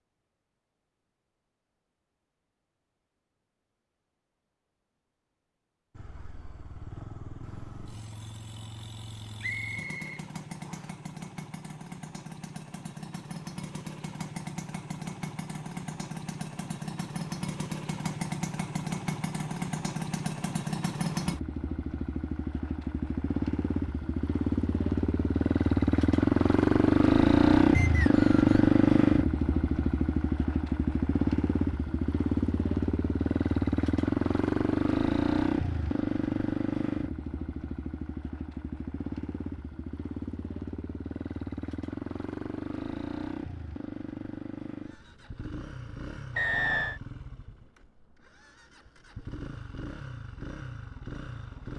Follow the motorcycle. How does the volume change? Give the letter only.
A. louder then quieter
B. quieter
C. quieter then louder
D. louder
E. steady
A.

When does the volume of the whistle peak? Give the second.
47 s.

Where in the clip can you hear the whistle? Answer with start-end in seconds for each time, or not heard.
9.4-10.9, 27.7-28.6, 46.4-47.0.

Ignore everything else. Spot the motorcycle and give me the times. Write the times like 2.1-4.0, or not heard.
6.0-51.7.